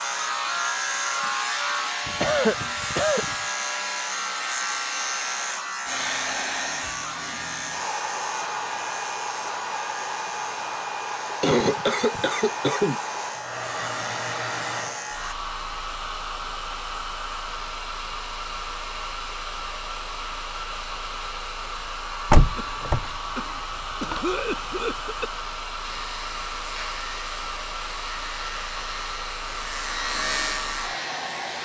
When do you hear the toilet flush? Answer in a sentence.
You can't hear the toilet flush here.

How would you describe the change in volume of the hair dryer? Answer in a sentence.
The loudness of the hair dryer stays about the same.